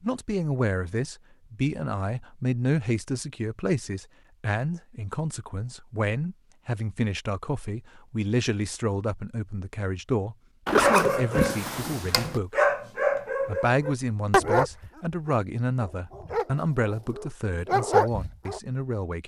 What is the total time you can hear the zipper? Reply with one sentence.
You can hear the zipper for 2 seconds altogether.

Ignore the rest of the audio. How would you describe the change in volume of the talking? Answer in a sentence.
The loudness of the talking stays about the same.